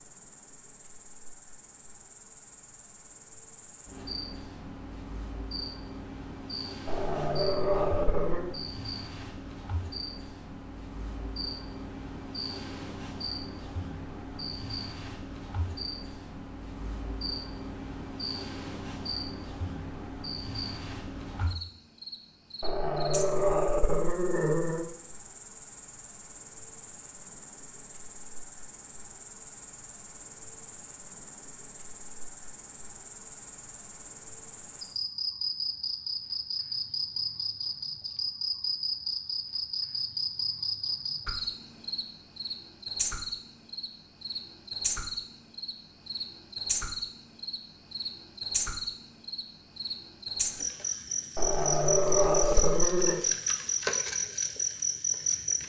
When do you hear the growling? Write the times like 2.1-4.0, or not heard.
6.8-8.5, 22.6-24.9, 51.4-53.2.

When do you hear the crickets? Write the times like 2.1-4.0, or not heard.
0.0-55.6.